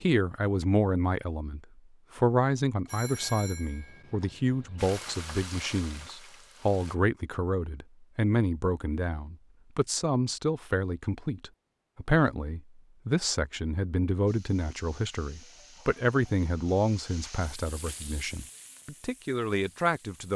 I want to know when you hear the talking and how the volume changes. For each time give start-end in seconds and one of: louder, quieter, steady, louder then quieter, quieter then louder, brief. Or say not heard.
0.0-20.3 steady.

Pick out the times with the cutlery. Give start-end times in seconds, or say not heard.
not heard.